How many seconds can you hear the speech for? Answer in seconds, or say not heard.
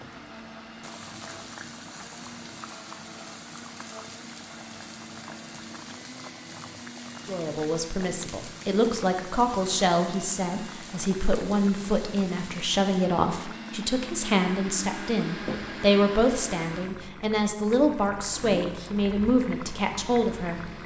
13 s.